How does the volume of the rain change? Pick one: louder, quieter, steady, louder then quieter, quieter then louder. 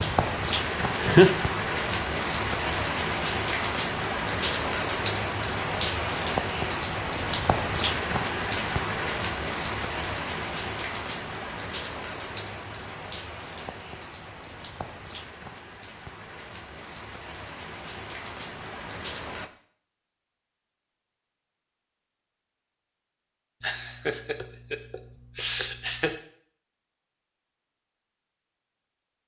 quieter.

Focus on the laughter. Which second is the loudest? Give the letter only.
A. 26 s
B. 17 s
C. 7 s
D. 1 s
D.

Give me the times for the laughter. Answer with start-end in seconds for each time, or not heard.
0.8-1.3, 23.6-26.1.